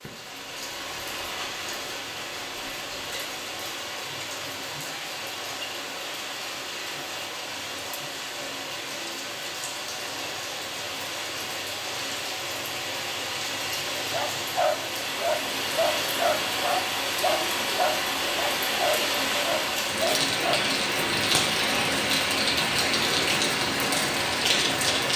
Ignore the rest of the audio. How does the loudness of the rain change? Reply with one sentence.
The loudness of the rain goes up.